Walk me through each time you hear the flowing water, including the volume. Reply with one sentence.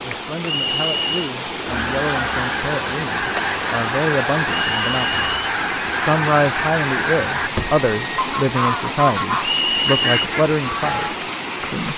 The flowing water can be heard from 0.0 to 11.9 s, at a steady volume.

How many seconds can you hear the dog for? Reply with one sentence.
The dog can't be heard in this clip.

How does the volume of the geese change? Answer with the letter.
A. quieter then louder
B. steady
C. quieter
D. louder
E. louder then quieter
B.